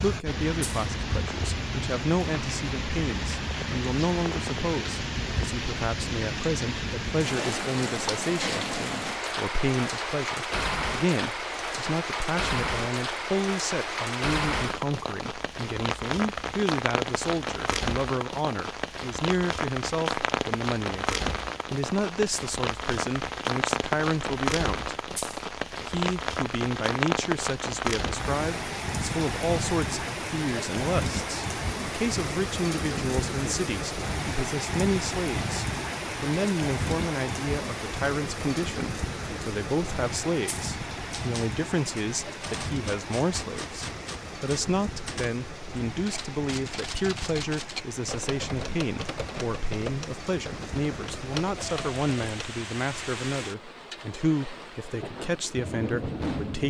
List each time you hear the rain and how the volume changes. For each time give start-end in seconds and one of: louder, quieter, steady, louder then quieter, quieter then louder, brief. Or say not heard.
0.0-56.6 quieter.